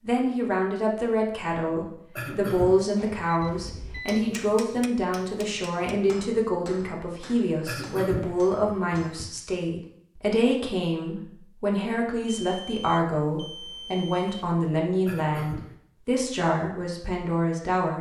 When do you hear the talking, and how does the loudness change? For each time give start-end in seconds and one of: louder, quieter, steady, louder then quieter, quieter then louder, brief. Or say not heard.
0.0-17.9 steady.